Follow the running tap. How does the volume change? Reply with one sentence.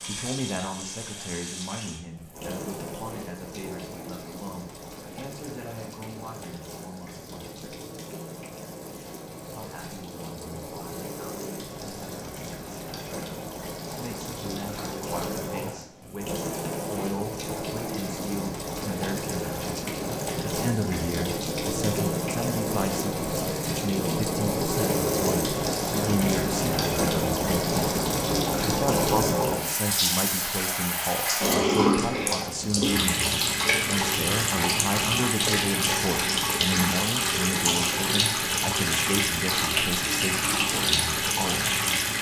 The volume of the running tap goes up.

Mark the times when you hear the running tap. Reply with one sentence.
The running tap can be heard from 0.0 to 42.1 s.